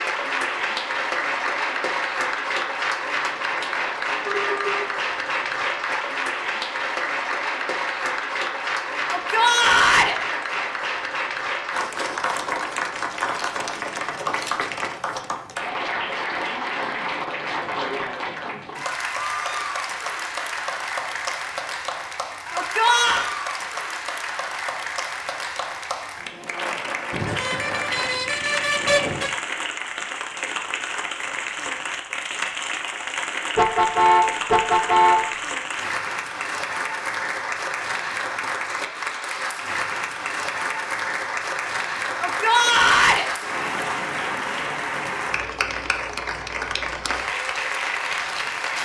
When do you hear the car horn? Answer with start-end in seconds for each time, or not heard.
4.2-5.0, 27.1-29.4, 33.5-35.5.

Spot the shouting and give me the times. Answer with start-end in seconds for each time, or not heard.
9.1-10.2, 22.5-23.3, 42.2-43.2.